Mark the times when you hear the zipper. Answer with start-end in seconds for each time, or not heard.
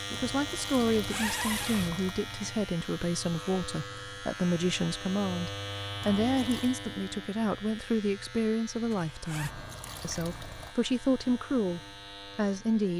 0.9-1.9, 8.9-9.6.